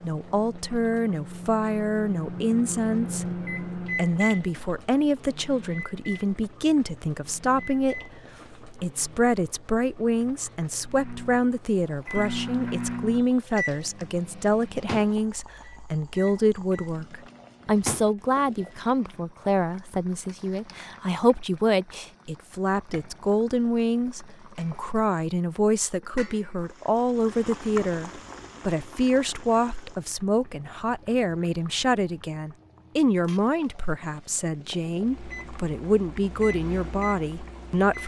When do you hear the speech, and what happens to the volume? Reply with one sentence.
You can hear the speech from 0.0 to 38.0 s, at a steady volume.